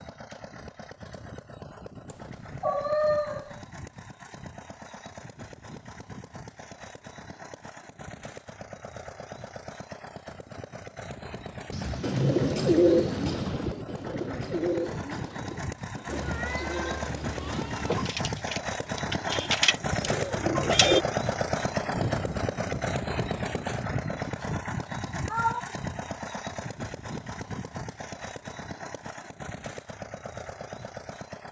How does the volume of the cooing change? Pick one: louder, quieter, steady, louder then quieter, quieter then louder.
quieter then louder.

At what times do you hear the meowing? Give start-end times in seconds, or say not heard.
2.0-3.6, 16.1-18.1, 24.8-25.6.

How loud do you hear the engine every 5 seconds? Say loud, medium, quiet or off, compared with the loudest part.
quiet, quiet, medium, loud, loud, medium, medium.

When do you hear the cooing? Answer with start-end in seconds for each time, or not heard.
12.0-21.1.